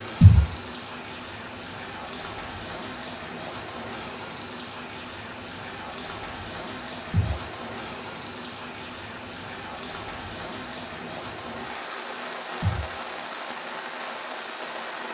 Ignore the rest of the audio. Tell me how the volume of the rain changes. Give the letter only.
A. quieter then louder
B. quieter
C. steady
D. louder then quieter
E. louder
C.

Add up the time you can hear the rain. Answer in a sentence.
The rain can be heard for 15 seconds in total.